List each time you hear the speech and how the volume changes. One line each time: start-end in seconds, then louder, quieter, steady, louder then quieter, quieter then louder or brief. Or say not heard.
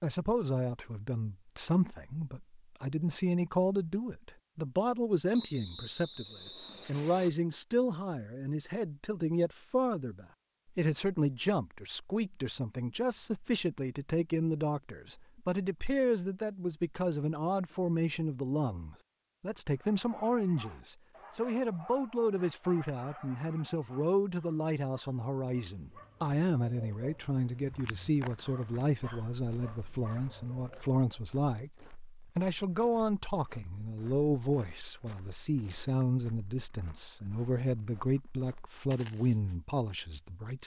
0.0-40.6 steady.